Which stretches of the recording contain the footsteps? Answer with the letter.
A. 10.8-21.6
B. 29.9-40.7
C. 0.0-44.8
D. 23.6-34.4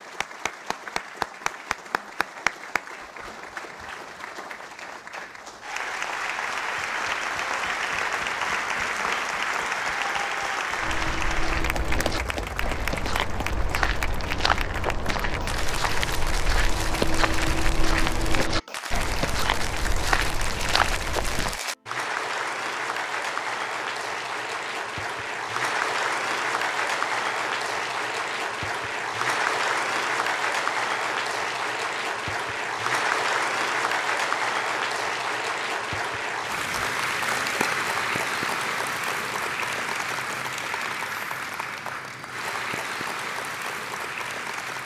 A.